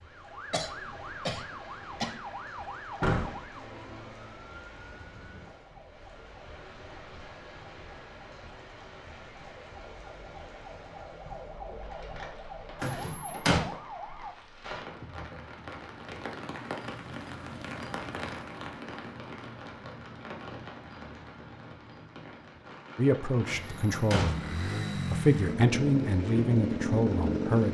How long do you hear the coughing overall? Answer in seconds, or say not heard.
2 s.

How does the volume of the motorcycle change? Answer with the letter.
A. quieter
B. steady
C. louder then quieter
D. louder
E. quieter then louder
D.